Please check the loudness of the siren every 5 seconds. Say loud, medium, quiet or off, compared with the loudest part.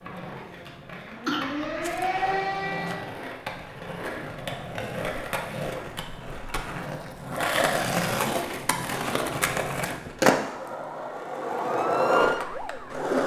loud, off, loud.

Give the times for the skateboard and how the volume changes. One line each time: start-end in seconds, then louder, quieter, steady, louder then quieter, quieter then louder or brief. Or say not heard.
0.0-13.2 louder.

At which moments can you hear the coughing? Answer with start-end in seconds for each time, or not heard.
1.2-2.2.